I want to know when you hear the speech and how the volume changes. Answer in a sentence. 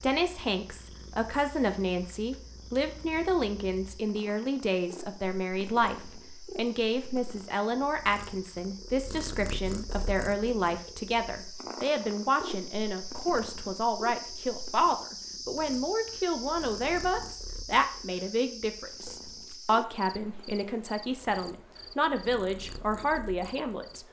You can hear the speech from 0.0 to 24.0 s, at a steady volume.